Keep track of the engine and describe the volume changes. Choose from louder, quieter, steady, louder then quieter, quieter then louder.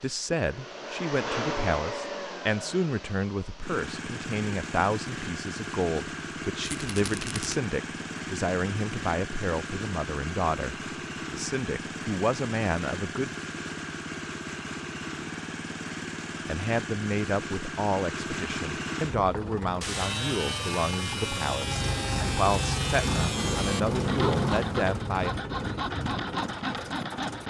steady.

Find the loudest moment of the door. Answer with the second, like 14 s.
24 s.